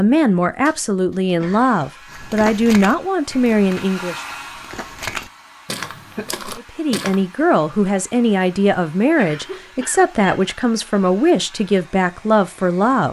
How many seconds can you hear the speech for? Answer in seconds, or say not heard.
11 s.